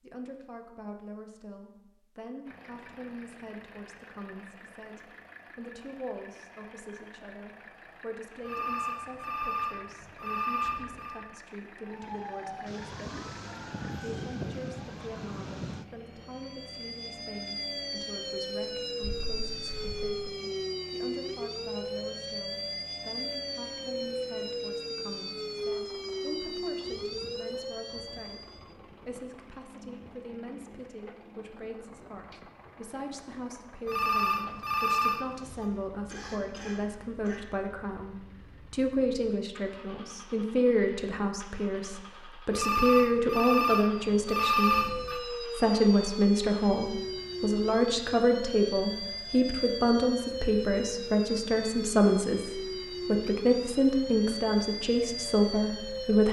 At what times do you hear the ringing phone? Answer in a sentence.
The ringing phone can be heard from 8.4 to 11.2 s, from 33.9 to 35.6 s and from 42.5 to 45.2 s.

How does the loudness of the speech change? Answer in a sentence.
The volume of the speech goes up.